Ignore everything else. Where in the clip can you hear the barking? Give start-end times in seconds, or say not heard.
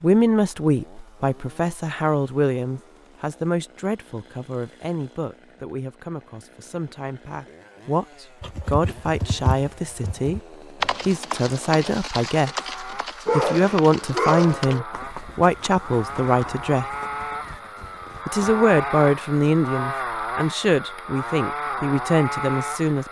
13.2-14.8.